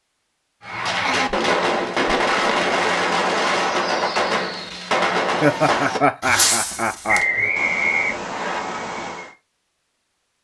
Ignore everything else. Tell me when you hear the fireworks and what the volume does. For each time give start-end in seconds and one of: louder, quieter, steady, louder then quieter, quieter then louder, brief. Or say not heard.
0.6-9.3 quieter.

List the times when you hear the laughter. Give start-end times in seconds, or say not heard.
0.9-2.8, 5.4-7.5.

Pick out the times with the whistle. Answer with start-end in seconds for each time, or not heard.
7.0-8.6.